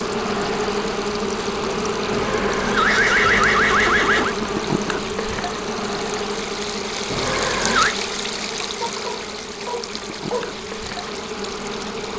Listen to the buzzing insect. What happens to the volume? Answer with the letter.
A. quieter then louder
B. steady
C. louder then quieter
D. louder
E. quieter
E.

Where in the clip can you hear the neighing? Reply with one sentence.
You can hear the neighing from 2.1 to 4.3 s and from 7.1 to 8.0 s.